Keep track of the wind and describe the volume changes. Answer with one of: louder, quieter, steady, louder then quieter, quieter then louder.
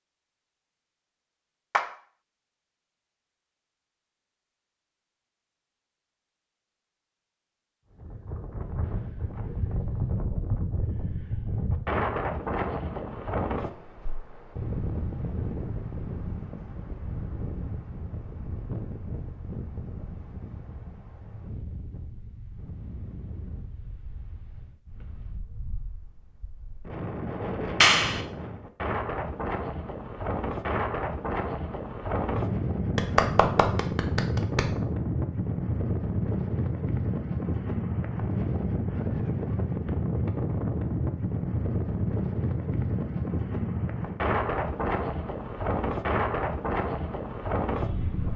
quieter then louder.